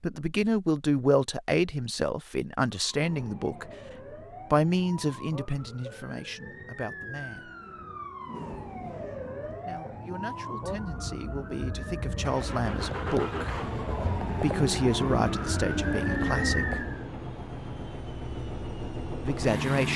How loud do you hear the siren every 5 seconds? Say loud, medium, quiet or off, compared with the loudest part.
quiet, medium, medium, loud.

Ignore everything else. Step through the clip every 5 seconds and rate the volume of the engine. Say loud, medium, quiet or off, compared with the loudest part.
off, off, loud, loud.